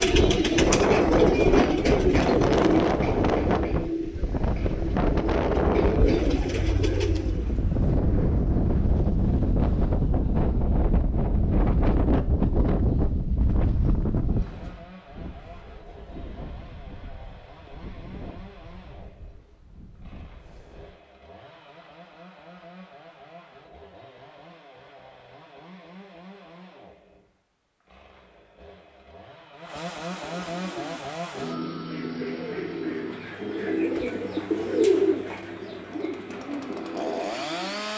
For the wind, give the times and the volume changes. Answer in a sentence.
The wind can be heard from 0.0 to 21.0 s, getting quieter.